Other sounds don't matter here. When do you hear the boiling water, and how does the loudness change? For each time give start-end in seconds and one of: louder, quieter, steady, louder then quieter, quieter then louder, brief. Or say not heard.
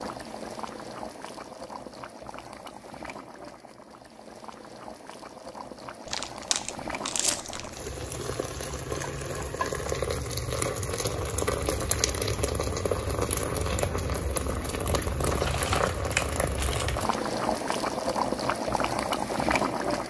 0.0-20.0 louder.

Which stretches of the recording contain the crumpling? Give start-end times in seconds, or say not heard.
6.0-7.8, 15.3-17.1.